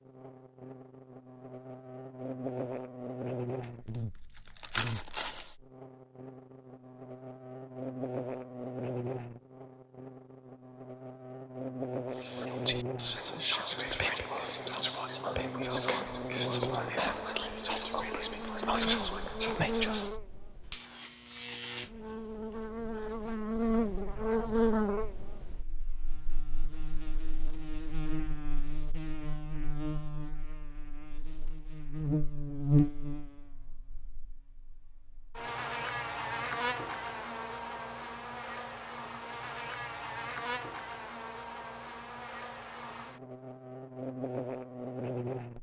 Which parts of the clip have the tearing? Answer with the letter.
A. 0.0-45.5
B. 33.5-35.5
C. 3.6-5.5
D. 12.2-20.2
C.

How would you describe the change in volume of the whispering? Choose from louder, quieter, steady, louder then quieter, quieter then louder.
steady.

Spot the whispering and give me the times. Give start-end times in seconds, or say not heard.
12.2-20.2.